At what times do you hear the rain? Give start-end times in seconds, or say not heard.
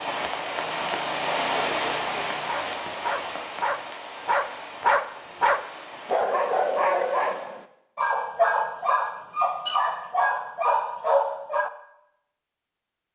0.0-7.5.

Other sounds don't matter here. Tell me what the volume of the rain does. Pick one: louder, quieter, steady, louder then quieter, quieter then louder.
quieter.